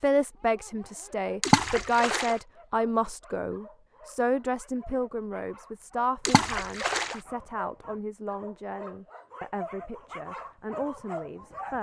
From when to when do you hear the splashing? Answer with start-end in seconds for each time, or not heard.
1.4-2.4, 6.2-7.2.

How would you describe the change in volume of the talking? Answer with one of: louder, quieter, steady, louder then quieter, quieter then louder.
quieter.